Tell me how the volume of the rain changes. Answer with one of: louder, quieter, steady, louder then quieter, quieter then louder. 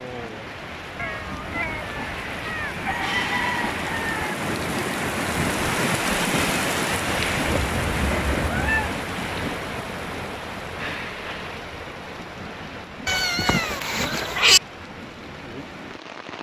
louder then quieter.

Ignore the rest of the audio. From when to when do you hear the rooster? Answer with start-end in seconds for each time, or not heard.
2.9-4.3.